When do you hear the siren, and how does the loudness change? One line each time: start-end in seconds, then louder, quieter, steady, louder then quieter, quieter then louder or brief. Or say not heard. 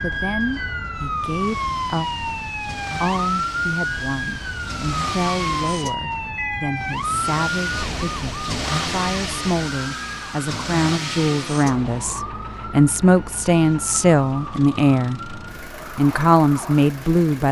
0.0-17.1 quieter.